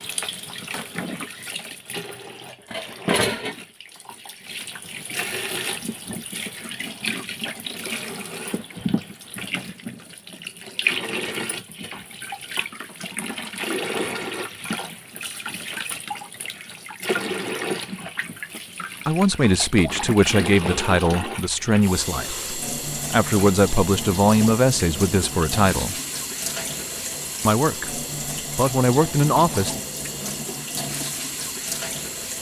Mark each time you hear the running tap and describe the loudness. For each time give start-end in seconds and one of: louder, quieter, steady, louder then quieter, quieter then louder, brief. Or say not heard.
0.0-32.3 steady.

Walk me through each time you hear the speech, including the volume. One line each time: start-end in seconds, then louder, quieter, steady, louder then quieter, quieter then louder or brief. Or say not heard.
19.1-25.9 quieter then louder
27.4-29.8 brief.